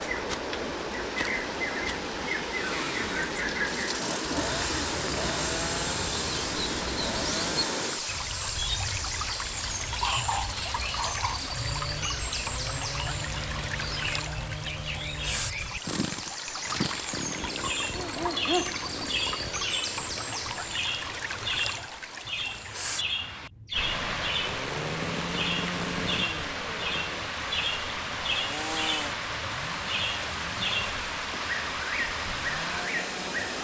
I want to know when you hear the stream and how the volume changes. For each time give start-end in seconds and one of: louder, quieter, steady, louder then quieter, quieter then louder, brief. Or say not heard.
0.0-33.6 steady.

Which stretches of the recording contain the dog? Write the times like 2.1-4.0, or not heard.
10.0-11.4, 17.9-19.2.